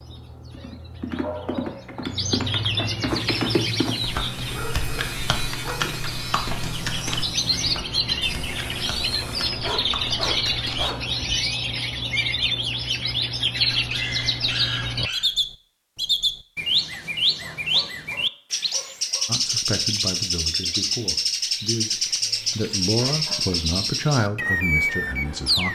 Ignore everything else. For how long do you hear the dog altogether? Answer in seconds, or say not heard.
9 s.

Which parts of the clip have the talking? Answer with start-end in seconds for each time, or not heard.
19.2-25.7.